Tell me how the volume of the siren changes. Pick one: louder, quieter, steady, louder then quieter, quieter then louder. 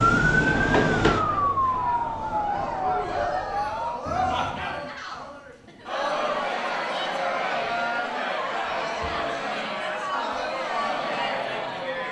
quieter.